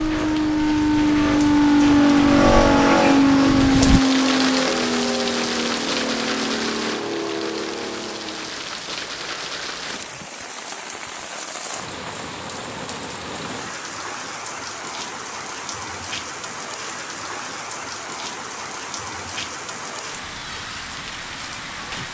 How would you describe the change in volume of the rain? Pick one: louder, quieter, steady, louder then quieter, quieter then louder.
quieter.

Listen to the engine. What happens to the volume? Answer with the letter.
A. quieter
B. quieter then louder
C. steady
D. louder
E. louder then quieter
A.